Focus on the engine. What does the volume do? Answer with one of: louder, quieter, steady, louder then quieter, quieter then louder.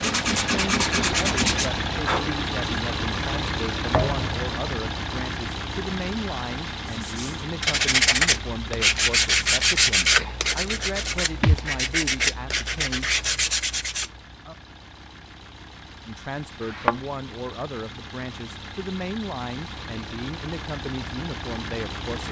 quieter then louder.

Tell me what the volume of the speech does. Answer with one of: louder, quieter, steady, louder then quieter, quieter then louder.
steady.